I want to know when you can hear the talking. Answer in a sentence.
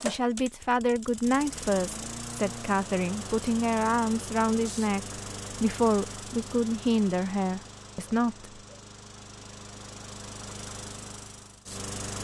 The talking can be heard from 0.0 to 8.5 s.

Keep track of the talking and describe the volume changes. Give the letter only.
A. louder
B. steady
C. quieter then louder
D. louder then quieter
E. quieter
B.